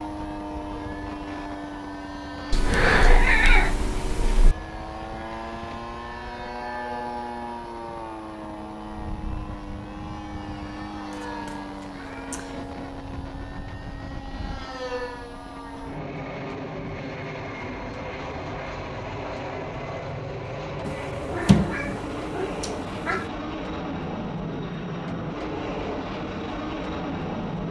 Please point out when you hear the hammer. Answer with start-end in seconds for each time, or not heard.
not heard.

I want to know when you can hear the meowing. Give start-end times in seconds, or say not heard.
2.5-4.5, 11.1-12.7, 20.9-23.2.